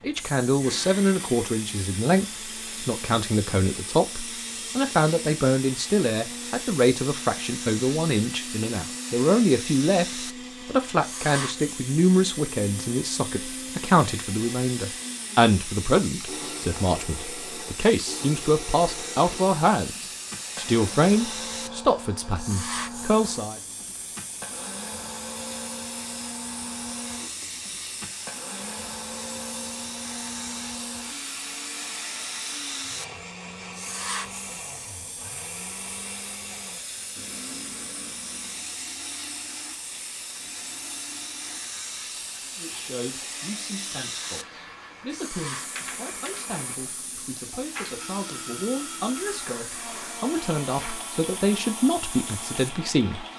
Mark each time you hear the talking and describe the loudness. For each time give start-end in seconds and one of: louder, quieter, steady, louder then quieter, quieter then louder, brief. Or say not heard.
0.0-23.6 steady
42.5-53.2 louder.